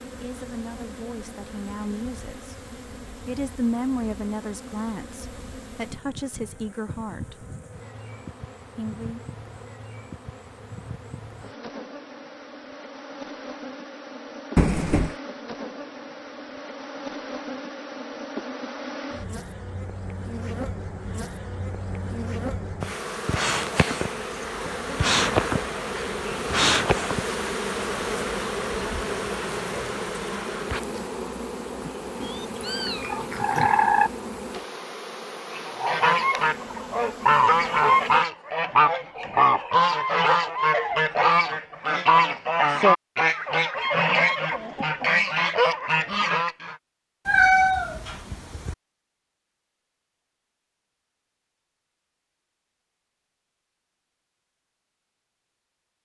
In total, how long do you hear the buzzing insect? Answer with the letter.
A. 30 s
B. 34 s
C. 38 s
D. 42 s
C.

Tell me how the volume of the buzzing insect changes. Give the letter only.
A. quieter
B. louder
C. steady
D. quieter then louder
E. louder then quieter
E.